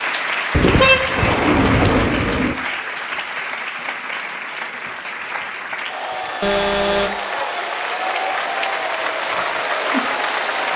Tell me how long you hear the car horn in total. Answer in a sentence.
The car horn can be heard for 3 seconds in total.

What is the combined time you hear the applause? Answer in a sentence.
The applause can be heard for 11 seconds in total.